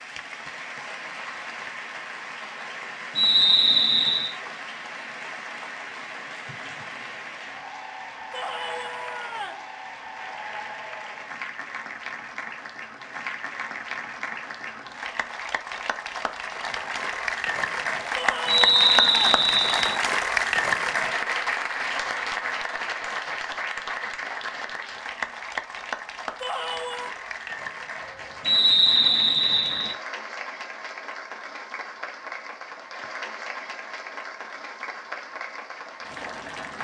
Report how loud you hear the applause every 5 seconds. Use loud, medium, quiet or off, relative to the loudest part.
medium, medium, medium, loud, loud, medium, medium, medium.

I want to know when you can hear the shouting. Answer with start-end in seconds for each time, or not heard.
8.3-9.7, 18.1-19.2, 26.4-27.1.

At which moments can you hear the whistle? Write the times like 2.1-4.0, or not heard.
3.1-4.3, 18.4-19.9, 28.4-29.9.